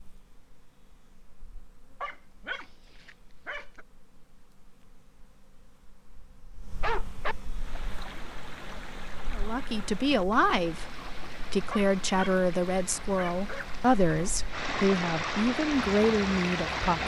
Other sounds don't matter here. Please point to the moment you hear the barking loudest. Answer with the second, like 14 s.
7 s.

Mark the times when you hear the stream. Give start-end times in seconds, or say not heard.
7.5-17.0.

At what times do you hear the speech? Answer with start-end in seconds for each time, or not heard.
9.3-17.0.